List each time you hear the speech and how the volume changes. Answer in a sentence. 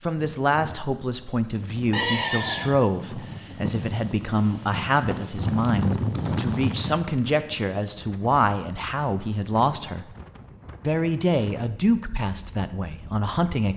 You can hear the speech from 0.0 to 10.1 s, at a steady volume; and briefly from 10.8 to 13.7 s.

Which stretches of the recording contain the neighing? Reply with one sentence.
The neighing can be heard from 1.9 to 2.8 s.